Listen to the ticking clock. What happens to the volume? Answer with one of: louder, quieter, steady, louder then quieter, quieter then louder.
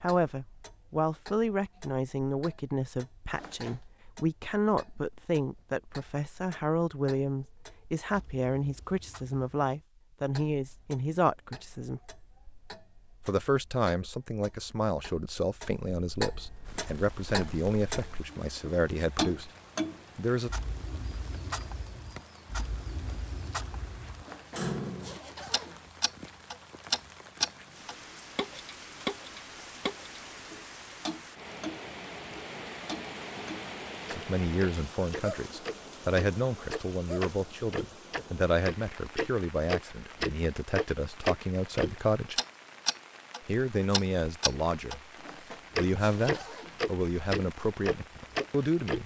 louder.